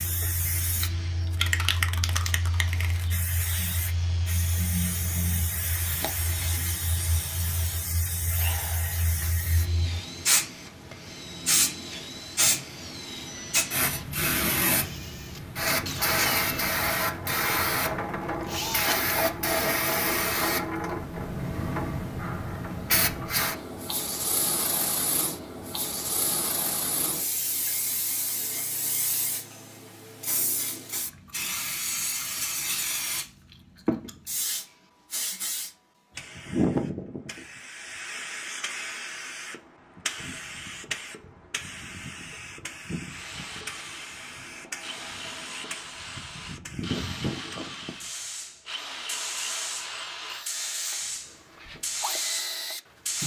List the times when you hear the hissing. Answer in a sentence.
You can hear the hissing from 0.0 to 53.2 s.